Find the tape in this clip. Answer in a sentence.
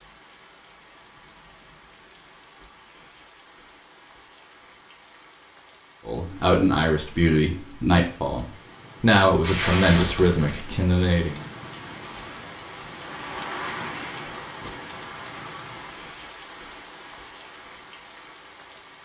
You can hear the tape from 9.4 to 10.6 s.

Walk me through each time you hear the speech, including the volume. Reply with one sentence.
You can hear the speech from 6.0 to 11.4 s, at a steady volume.